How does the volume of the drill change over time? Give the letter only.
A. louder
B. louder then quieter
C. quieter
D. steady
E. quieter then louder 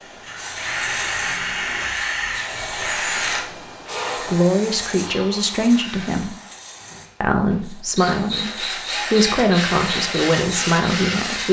E.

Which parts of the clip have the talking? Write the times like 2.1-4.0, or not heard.
4.2-6.3, 7.2-11.4.